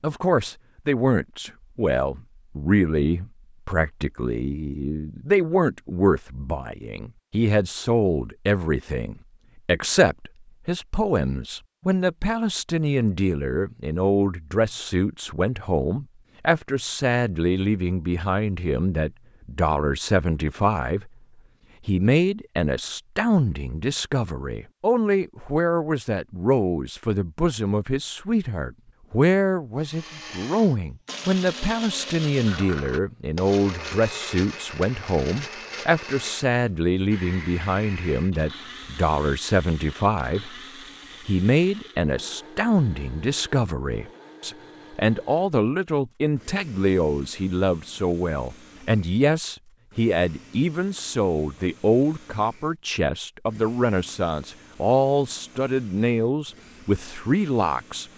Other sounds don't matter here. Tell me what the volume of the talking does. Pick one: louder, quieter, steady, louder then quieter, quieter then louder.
steady.